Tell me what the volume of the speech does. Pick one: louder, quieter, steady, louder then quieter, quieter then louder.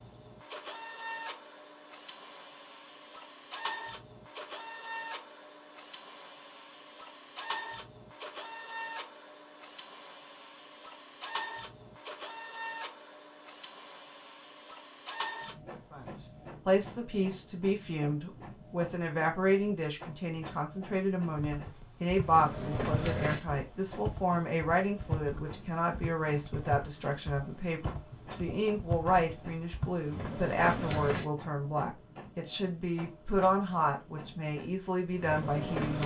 steady.